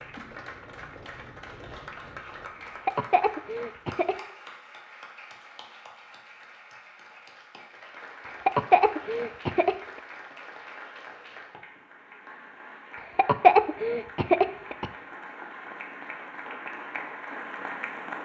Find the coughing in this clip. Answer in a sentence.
The coughing can be heard from 2.6 to 4.2 s, from 8.2 to 10.0 s and from 13.2 to 14.9 s.